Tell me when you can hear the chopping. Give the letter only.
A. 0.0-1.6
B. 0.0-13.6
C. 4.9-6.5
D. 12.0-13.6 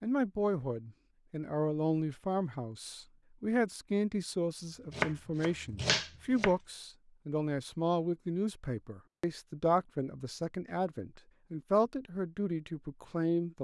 C.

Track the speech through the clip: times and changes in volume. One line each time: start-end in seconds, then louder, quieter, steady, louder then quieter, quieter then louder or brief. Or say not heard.
0.0-13.6 steady.